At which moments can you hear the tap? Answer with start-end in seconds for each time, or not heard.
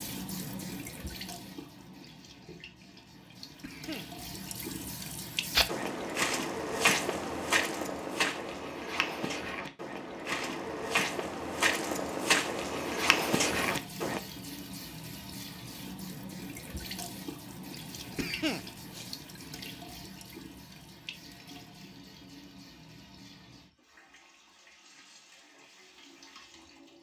0.0-5.7, 13.5-26.9.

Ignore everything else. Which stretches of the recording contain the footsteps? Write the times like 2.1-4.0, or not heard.
5.5-14.2.